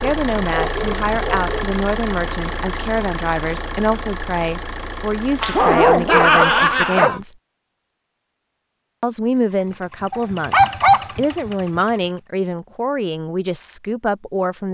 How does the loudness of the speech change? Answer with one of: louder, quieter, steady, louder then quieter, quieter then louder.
steady.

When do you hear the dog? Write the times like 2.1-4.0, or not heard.
0.0-1.7, 5.4-7.2, 10.1-11.1.